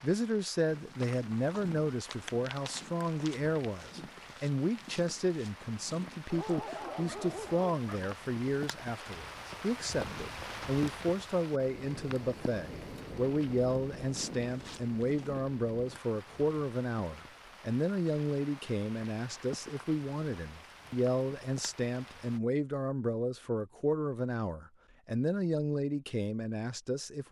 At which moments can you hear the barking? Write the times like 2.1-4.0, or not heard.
6.3-8.2.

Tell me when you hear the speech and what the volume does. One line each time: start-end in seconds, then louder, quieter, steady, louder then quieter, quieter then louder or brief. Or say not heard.
0.0-27.2 steady.